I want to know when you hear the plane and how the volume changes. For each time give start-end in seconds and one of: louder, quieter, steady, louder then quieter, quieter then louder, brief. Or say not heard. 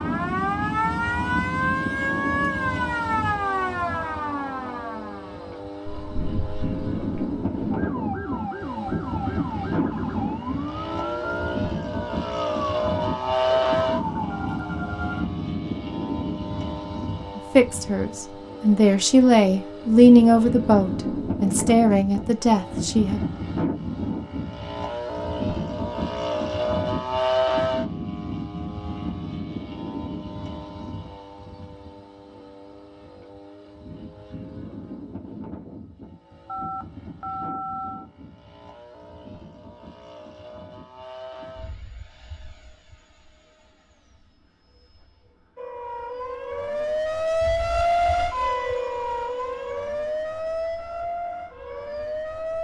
0.0-52.5 quieter.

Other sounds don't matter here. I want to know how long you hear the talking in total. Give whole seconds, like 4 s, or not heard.
6 s.